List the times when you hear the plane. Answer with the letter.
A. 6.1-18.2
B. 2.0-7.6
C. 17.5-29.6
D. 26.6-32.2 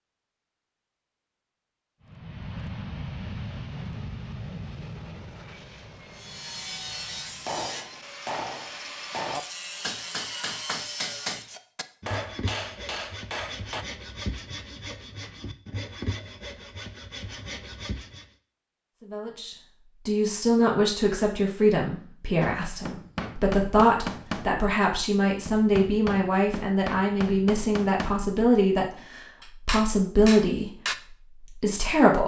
B.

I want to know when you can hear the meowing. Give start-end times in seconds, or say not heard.
not heard.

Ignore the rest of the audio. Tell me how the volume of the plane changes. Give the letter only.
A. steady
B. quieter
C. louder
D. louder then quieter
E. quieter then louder
B.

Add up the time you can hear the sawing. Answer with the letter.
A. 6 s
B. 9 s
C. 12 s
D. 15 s
C.